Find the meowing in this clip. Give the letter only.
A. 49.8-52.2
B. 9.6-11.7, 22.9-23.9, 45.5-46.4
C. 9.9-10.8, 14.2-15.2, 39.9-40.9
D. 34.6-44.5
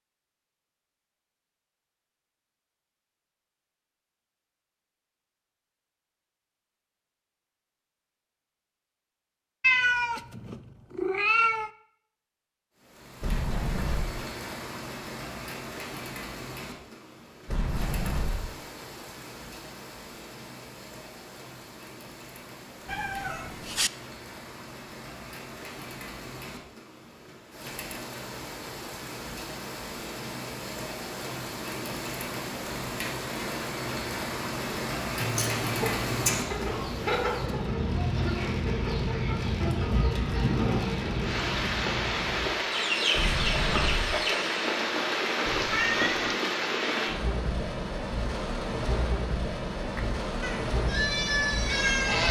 B.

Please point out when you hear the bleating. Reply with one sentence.
The bleating can be heard from 49.8 to 52.2 s.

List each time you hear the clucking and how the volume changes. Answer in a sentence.
You can hear the clucking from 34.6 to 44.5 s, at a steady volume.